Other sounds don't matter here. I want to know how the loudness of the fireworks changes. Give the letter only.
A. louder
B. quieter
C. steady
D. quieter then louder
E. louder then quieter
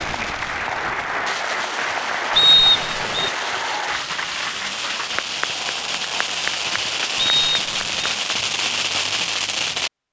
A.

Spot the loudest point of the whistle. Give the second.
3 s.